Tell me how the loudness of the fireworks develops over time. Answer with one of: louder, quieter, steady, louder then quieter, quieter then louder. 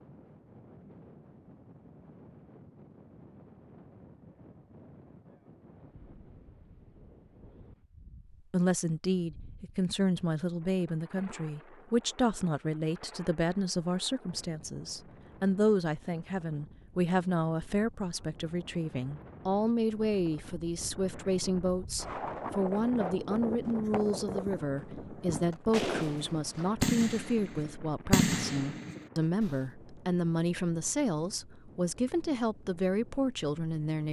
louder.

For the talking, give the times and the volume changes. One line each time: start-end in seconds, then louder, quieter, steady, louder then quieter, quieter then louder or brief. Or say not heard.
8.5-34.0 steady.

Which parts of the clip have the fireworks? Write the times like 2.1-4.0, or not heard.
22.1-29.6.